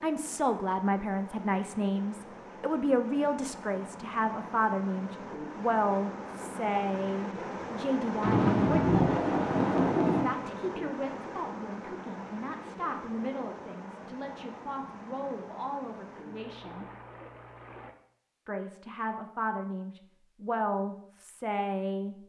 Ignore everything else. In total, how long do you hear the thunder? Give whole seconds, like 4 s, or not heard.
2 s.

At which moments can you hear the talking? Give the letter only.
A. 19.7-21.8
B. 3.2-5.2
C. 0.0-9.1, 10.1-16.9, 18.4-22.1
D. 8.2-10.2
C.